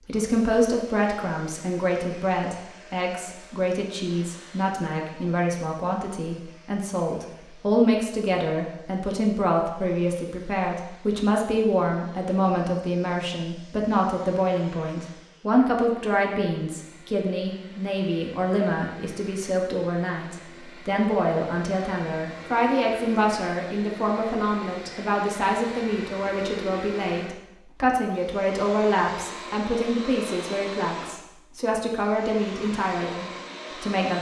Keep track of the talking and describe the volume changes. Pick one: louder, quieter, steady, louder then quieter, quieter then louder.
steady.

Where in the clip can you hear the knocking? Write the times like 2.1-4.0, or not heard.
not heard.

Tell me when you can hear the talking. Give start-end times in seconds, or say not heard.
0.1-34.1.